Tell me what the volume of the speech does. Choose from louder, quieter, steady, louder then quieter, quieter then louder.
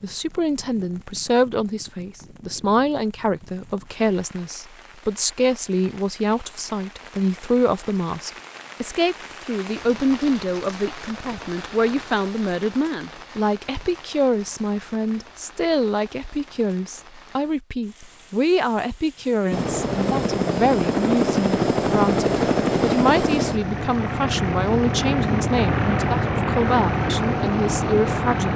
steady.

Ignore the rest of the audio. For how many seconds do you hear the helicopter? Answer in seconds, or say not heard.
9 s.